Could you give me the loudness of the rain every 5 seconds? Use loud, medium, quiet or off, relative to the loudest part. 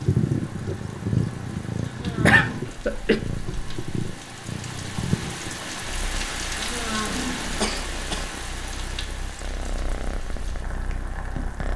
medium, loud, medium.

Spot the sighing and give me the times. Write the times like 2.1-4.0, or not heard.
1.8-2.7, 6.5-7.8.